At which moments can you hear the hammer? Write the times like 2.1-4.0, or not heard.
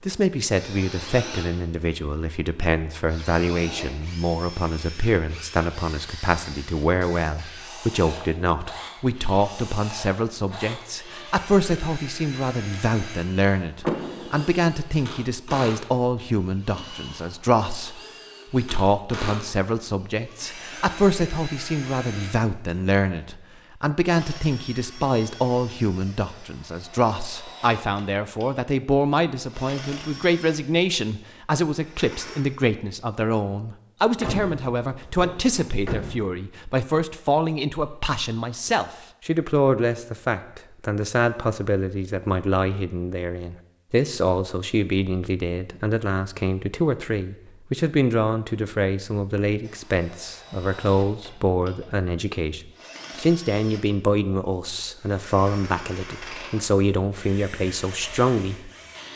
not heard.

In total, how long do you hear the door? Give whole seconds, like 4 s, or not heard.
3 s.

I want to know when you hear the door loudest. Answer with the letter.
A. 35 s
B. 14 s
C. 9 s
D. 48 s
B.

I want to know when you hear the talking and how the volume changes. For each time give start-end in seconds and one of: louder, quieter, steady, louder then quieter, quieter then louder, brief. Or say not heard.
0.0-59.1 steady.